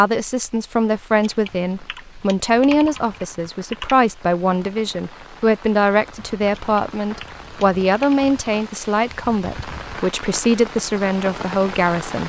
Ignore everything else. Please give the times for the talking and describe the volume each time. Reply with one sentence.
You can hear the talking from 0.0 to 12.2 s, at a steady volume.